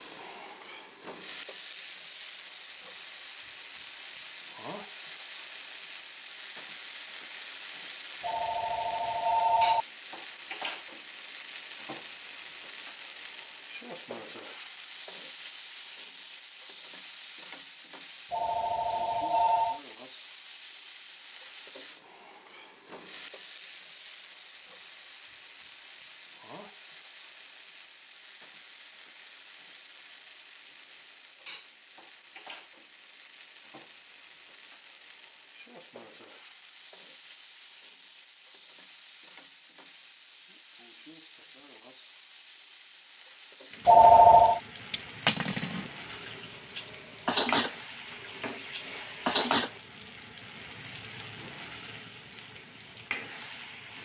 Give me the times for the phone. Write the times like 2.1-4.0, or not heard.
8.2-9.8, 18.3-19.8, 43.9-44.6.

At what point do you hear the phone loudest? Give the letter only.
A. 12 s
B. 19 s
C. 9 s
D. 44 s
D.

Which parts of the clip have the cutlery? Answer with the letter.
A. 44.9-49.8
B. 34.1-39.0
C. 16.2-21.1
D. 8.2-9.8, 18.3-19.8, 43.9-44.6
A.